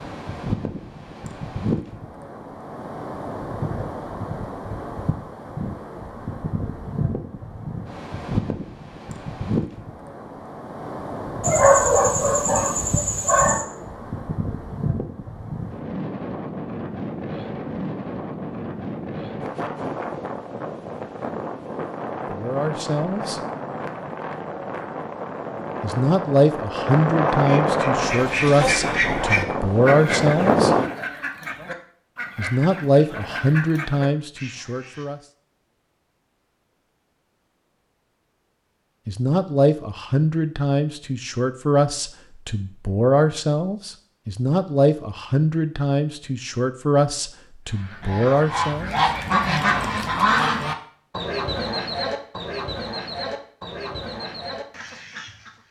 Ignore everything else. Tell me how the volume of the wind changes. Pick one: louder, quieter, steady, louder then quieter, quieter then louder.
louder.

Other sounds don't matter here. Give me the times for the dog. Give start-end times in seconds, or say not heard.
11.4-13.7.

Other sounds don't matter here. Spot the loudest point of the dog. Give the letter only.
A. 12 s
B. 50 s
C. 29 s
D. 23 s
A.